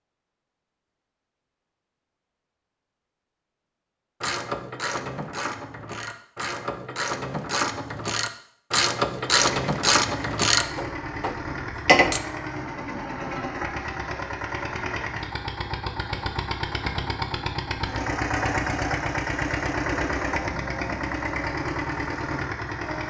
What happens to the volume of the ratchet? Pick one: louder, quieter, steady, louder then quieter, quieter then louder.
louder.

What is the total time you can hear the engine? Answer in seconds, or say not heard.
14 s.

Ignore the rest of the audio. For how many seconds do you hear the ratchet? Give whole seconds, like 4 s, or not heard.
8 s.